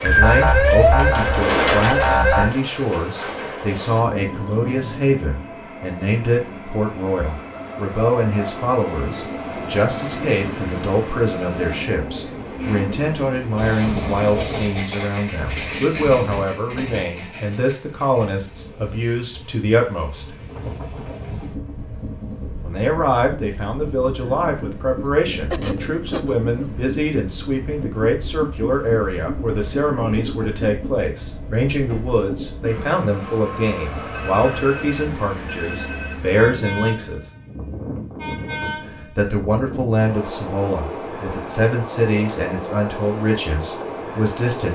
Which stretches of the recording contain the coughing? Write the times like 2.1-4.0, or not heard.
25.1-26.7.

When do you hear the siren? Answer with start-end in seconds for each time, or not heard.
0.1-2.5.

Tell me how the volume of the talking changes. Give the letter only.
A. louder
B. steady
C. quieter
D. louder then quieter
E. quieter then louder
B.